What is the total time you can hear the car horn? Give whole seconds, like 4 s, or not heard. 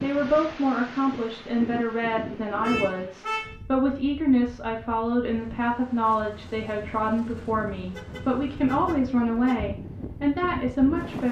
3 s.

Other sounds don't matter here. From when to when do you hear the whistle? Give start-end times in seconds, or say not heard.
not heard.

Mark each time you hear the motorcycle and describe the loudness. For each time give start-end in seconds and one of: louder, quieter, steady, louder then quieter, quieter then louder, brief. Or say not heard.
not heard.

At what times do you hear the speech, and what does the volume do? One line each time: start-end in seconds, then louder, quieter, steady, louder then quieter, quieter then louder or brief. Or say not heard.
0.0-11.2 steady.